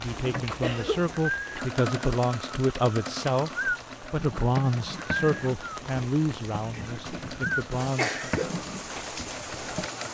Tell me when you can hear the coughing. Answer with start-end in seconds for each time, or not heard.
0.4-1.1, 6.7-8.6.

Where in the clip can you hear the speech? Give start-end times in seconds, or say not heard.
0.0-8.2.